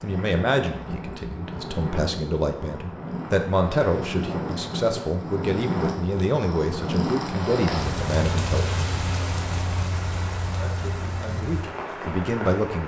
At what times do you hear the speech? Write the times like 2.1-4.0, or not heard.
0.0-9.1, 10.5-12.8.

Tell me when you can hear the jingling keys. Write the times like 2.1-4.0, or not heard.
not heard.